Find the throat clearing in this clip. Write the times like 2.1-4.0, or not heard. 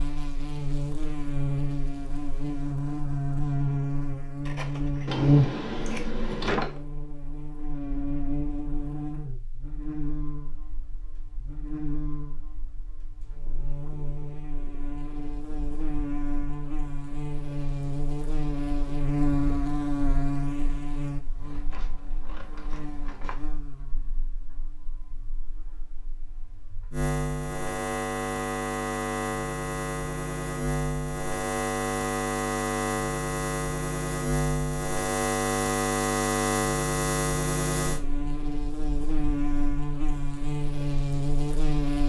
not heard.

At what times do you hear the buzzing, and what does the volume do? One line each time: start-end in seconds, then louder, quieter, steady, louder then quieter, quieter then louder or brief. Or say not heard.
0.0-42.0 quieter then louder.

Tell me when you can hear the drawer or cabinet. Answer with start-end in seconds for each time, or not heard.
5.0-6.8.